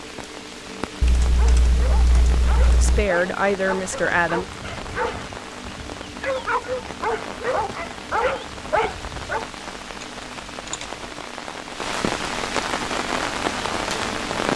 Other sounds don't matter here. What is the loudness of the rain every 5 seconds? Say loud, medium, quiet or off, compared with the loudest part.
medium, medium, loud.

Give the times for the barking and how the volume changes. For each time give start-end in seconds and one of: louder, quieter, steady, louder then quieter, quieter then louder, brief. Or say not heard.
1.2-9.4 louder.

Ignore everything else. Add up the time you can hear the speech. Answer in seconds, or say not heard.
2 s.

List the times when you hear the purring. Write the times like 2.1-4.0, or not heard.
not heard.